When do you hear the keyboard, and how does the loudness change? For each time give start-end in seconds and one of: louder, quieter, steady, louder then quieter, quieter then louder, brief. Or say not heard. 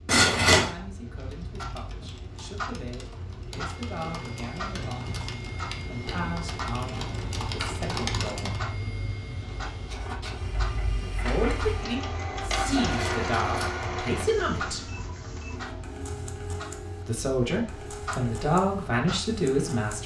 1.1-8.6 louder.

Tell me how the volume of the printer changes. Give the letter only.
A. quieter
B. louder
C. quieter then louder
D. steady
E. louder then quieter
E.